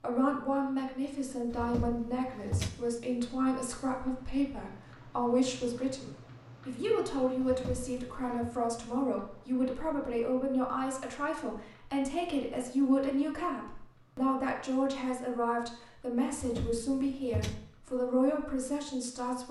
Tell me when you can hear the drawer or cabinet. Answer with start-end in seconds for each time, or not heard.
1.5-2.7, 7.4-8.5, 16.3-17.6.